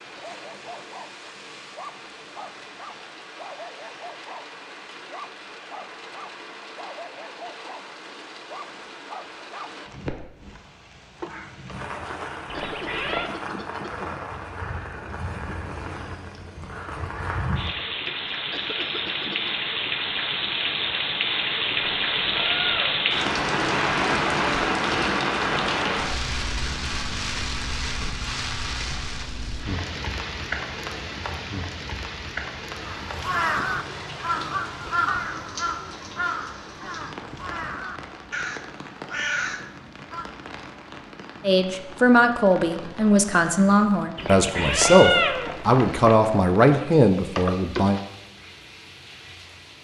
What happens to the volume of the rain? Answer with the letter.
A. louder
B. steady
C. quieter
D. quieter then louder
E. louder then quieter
E.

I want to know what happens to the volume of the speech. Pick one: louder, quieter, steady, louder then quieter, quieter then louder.
steady.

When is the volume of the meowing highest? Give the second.
45 s.